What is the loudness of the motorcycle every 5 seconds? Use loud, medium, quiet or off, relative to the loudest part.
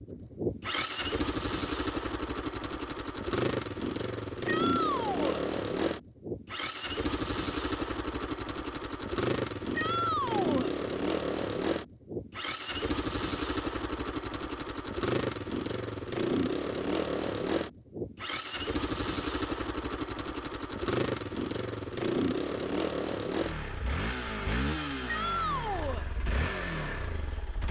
loud, loud, loud, loud, loud, medium.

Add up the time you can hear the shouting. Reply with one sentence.
The shouting can be heard for 3 seconds in total.